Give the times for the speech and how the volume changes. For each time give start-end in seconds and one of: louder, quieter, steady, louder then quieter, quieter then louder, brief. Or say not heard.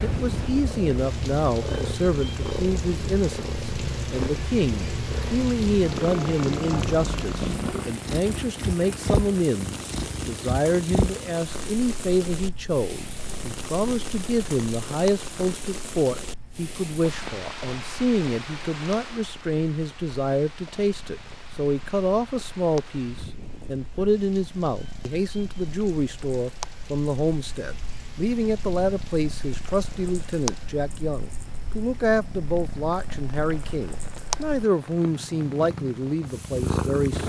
0.0-37.2 steady.